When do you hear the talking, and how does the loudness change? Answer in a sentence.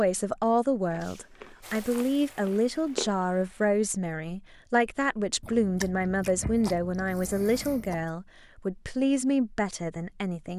The talking can be heard from 0.0 to 10.5 s, at a steady volume.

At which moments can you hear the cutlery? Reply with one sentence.
You can't hear the cutlery here.